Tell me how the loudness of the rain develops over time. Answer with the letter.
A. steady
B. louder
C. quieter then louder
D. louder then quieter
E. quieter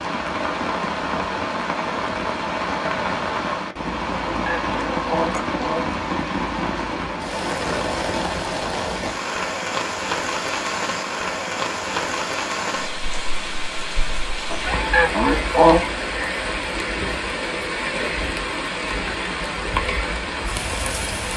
A.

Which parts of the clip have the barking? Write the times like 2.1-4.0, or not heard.
not heard.